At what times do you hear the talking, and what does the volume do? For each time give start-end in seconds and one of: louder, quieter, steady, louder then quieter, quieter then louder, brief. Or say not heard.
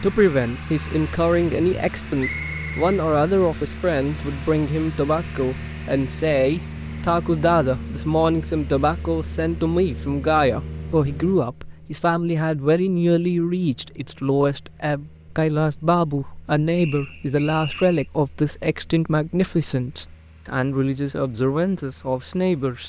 0.0-22.8 steady.